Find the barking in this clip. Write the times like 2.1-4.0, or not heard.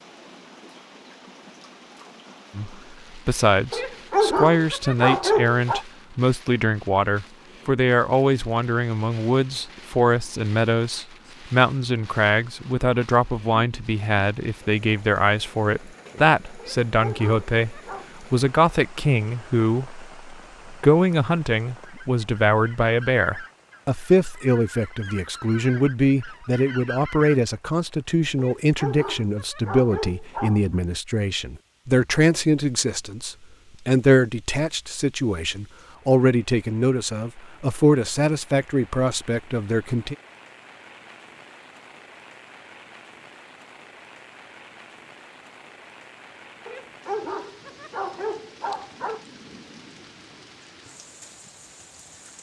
3.7-5.8, 16.6-18.1, 28.4-30.8, 46.6-49.2.